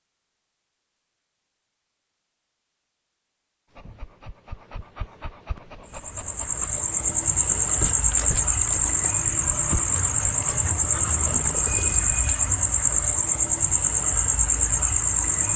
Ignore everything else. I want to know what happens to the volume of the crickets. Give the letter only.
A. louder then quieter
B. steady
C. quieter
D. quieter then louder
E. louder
B.